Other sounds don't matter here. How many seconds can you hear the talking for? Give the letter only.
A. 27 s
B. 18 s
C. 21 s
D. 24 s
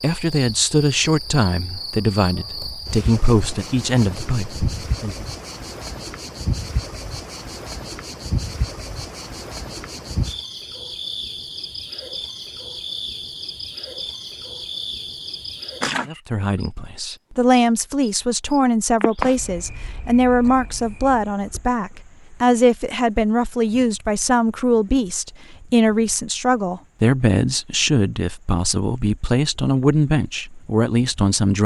C.